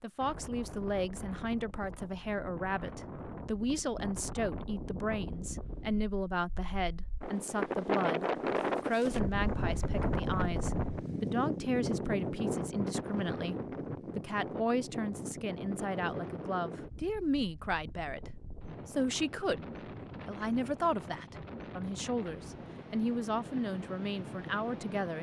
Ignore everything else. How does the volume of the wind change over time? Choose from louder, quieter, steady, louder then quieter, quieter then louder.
louder then quieter.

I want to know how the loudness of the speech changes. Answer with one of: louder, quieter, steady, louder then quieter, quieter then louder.
steady.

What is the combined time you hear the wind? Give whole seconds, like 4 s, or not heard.
25 s.